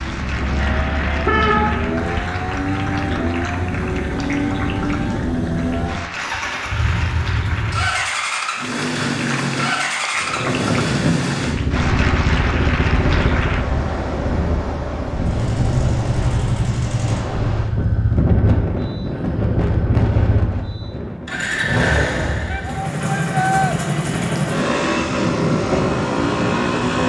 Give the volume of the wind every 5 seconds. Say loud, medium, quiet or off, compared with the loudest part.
off, off, loud, loud, medium, loud.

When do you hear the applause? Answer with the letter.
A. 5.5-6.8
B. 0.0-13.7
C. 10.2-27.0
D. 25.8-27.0
B.